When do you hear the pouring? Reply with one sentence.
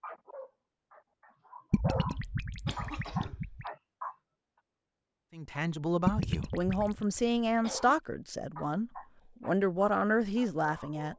You can hear the pouring from 1.7 to 3.6 s and from 6.0 to 7.0 s.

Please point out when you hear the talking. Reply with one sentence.
The talking can be heard from 5.3 to 11.1 s.